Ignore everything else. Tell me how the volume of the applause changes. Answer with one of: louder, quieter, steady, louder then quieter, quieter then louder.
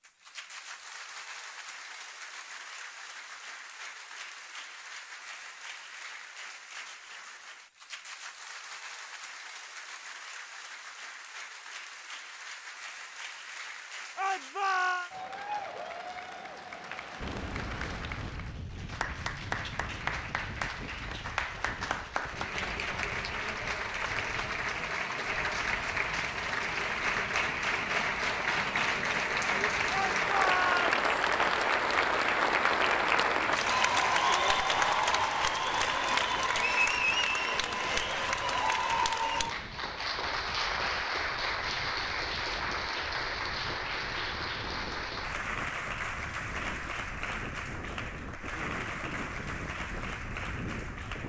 louder then quieter.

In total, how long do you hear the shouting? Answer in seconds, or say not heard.
2 s.